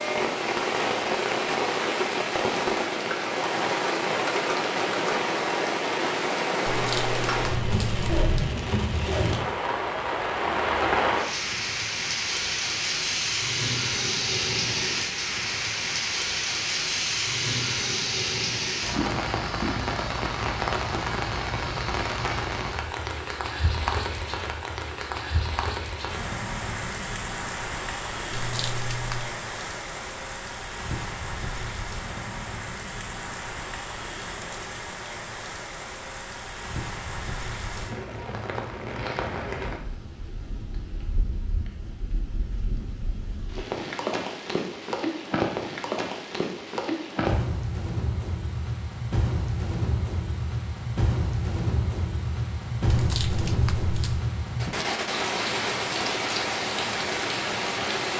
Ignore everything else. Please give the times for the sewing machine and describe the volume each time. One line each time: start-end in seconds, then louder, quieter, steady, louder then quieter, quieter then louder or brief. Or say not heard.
not heard.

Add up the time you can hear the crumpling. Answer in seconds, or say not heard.
4 s.